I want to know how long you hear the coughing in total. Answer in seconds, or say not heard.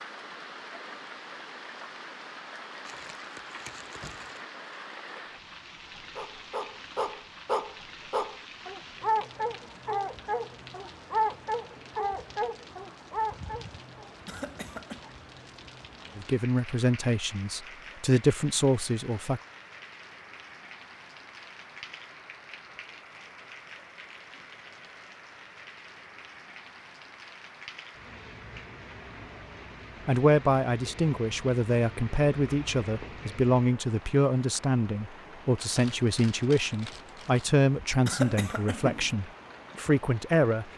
2 s.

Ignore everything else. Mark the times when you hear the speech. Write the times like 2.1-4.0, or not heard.
16.1-19.4, 30.1-40.6.